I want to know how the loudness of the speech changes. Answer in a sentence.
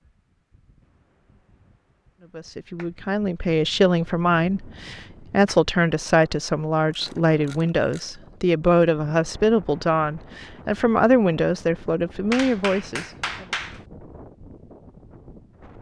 The loudness of the speech stays about the same.